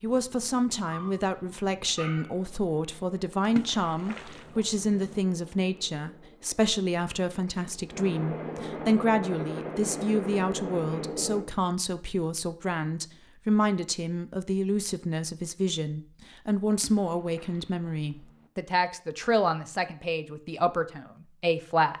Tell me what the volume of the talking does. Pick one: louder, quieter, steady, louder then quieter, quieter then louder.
steady.